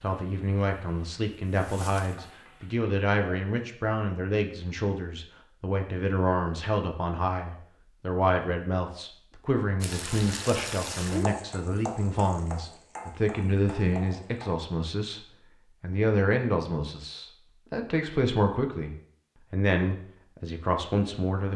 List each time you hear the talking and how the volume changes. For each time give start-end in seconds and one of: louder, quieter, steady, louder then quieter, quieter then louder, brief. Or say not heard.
0.0-21.5 steady.